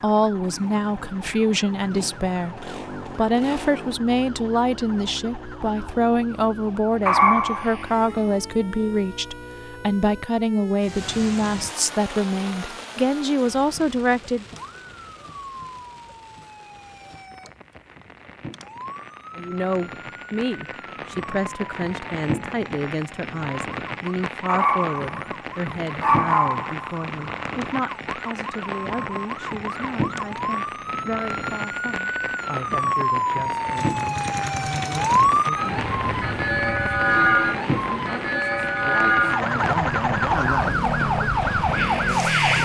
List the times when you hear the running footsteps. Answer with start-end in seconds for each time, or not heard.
not heard.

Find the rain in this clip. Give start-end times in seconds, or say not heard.
10.8-42.6.